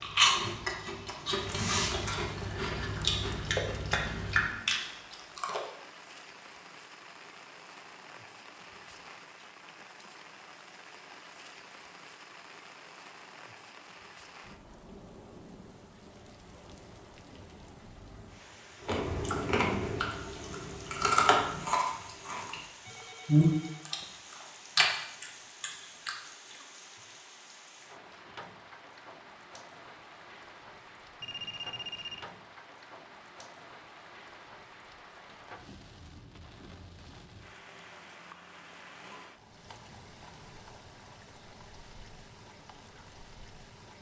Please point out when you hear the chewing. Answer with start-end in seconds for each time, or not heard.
0.0-5.6, 18.9-22.6, 23.2-26.6.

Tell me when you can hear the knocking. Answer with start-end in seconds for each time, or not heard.
3.5-4.0.